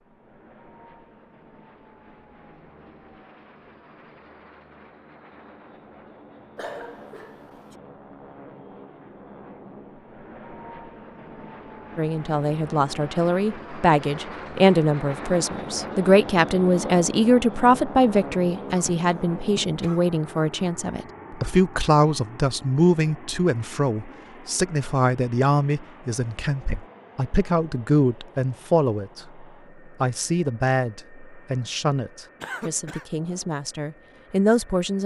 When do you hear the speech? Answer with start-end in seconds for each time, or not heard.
11.9-35.0.